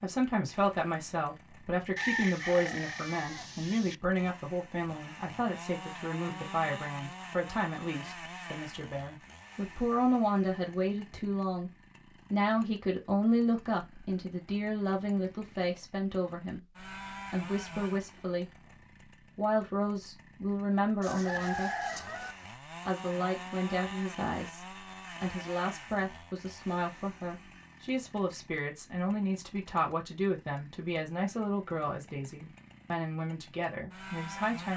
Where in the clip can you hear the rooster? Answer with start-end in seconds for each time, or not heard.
1.9-4.0, 21.0-22.4.